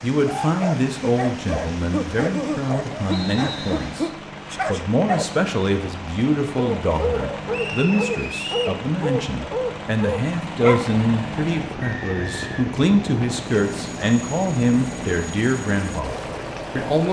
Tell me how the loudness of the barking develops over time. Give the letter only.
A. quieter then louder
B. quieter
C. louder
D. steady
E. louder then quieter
D.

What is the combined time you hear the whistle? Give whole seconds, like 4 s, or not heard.
3 s.